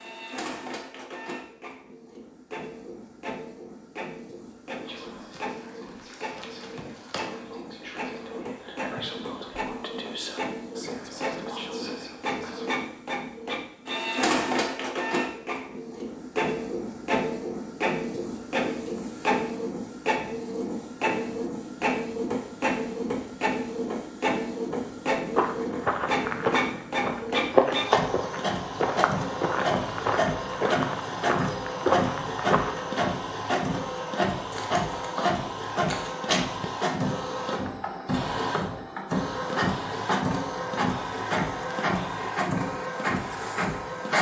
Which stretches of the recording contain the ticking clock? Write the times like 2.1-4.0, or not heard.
not heard.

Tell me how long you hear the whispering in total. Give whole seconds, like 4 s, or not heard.
8 s.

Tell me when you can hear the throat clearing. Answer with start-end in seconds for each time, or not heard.
not heard.